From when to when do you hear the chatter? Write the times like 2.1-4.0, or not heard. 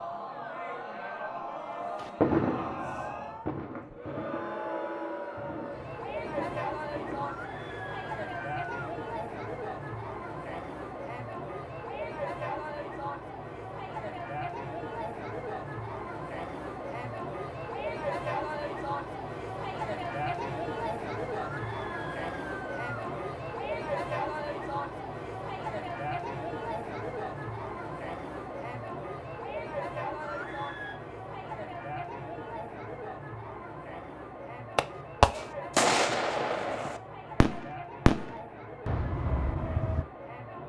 0.0-40.6.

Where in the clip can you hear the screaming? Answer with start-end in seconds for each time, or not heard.
7.2-8.9, 21.4-23.2, 30.2-31.0.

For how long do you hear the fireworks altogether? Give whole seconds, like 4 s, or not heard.
11 s.